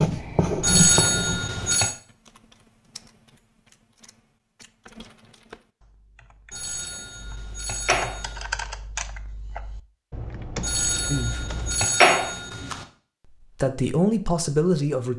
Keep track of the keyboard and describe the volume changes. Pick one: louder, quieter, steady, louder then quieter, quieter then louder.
louder.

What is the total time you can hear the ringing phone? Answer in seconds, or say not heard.
5 s.